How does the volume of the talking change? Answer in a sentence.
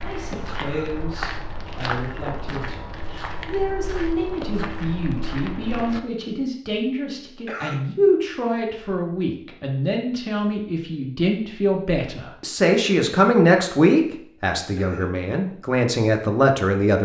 The loudness of the talking goes up.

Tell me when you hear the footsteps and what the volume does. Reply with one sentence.
The footsteps can be heard from 0.0 to 6.0 s, at a steady volume.